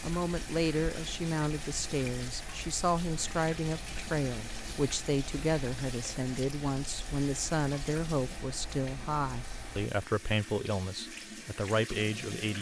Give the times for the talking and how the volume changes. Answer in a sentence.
You can hear the talking from 0.0 to 12.5 s, at a steady volume.